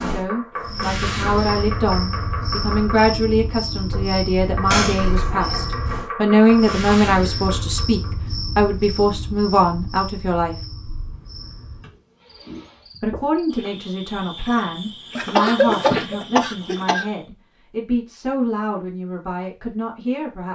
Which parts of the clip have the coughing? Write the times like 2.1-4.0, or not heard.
4.7-5.7, 15.2-17.1.